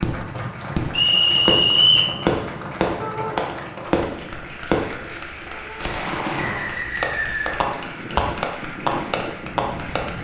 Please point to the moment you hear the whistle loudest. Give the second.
2 s.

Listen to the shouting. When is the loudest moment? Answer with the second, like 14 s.
3 s.